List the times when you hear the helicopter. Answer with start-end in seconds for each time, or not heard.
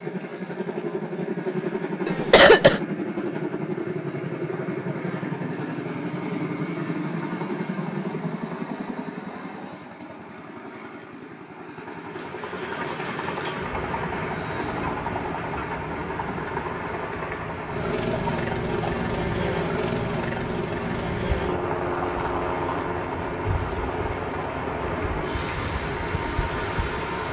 0.0-27.2.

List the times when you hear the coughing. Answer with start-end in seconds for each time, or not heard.
2.0-2.8, 18.2-19.1.